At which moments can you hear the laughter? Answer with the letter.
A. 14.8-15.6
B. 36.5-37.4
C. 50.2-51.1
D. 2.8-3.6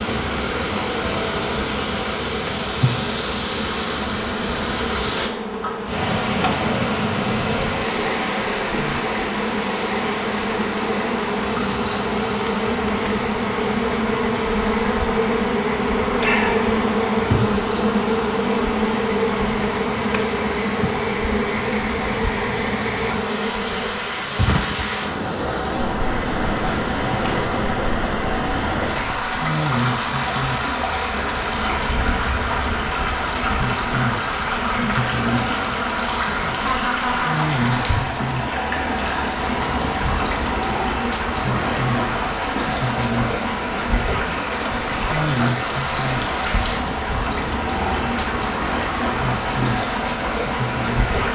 B.